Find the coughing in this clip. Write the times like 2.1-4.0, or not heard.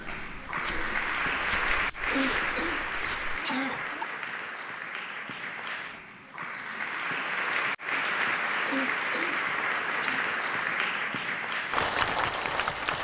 2.1-4.0, 8.7-10.2.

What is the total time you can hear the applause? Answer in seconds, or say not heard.
13 s.